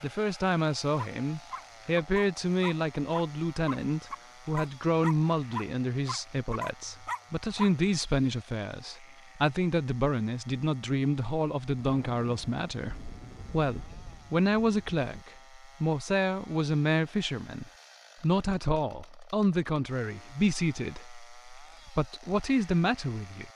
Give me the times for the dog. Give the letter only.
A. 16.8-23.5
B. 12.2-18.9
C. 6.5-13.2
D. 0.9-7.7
D.